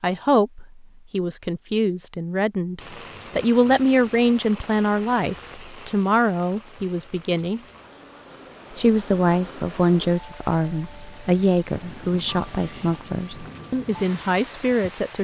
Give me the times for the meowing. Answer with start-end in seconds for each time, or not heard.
not heard.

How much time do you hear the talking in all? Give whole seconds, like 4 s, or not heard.
14 s.